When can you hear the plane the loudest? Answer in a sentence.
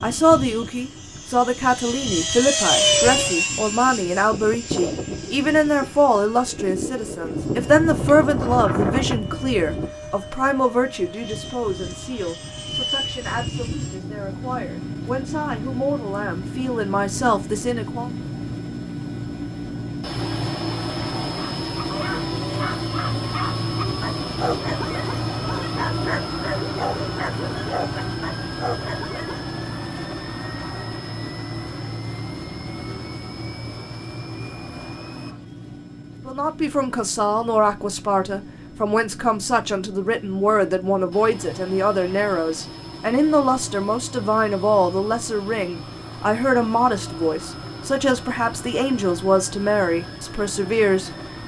The volume of the plane peaks at 3 seconds.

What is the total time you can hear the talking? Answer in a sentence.
The talking can be heard for 33 seconds in total.